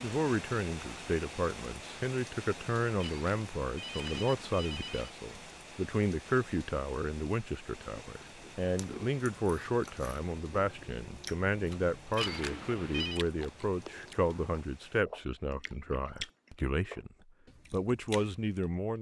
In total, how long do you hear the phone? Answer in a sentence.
You can hear the phone for 3 seconds altogether.